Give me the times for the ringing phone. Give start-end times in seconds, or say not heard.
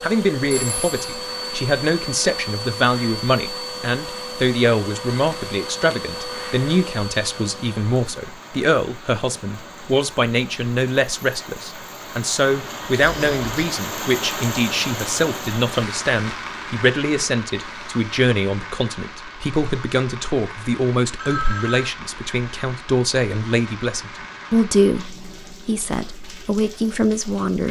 0.5-1.2, 13.0-13.7, 21.1-21.9.